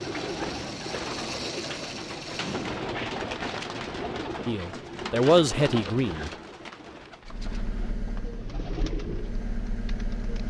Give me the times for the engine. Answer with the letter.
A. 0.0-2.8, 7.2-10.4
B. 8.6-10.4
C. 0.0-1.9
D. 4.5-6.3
A.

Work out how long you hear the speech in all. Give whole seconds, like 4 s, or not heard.
2 s.